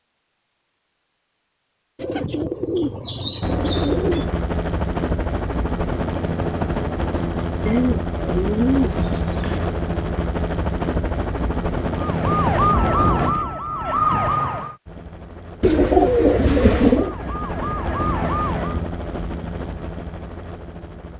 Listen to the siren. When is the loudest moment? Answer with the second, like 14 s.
13 s.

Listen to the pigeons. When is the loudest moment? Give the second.
16 s.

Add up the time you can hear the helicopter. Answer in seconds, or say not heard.
16 s.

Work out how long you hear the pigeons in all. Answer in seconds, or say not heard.
6 s.